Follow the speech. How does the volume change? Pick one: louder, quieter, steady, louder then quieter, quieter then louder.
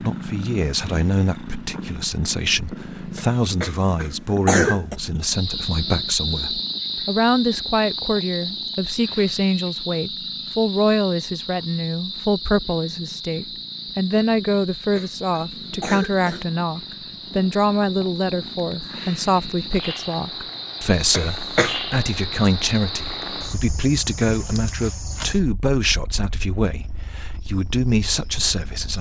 steady.